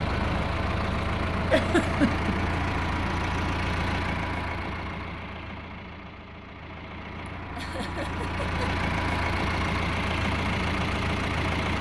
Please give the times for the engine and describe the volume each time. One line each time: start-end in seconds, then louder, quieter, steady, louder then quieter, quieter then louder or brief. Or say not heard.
0.0-11.7 quieter then louder.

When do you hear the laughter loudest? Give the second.
2 s.